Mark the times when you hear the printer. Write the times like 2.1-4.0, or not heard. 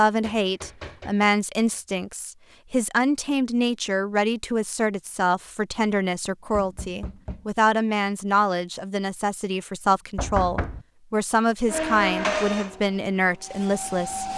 11.7-14.3.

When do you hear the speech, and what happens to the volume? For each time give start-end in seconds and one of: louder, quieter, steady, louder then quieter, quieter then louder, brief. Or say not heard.
0.0-14.2 steady.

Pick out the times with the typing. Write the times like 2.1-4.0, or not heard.
not heard.